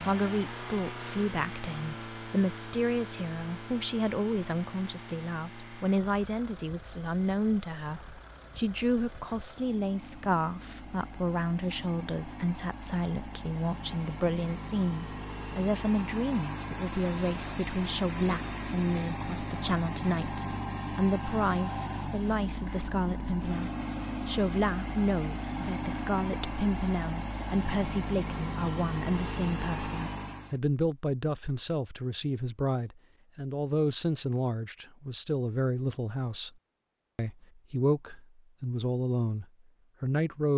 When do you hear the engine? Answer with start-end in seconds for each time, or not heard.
0.0-30.6.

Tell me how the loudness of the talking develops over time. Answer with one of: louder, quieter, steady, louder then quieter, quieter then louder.
steady.